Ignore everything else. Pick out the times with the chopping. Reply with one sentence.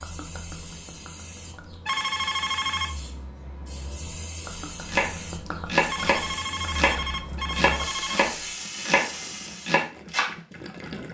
The chopping can be heard from 4.8 to 10.3 s.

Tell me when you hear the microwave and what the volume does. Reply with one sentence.
The microwave can't be heard in this clip.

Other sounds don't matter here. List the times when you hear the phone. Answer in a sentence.
The phone can be heard from 1.9 to 2.9 s and from 5.8 to 8.3 s.